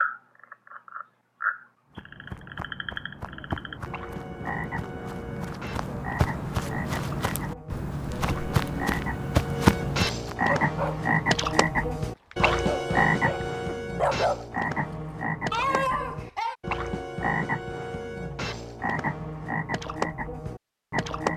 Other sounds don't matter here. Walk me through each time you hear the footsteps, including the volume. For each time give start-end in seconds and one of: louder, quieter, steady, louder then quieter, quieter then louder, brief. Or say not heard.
1.9-10.3 louder.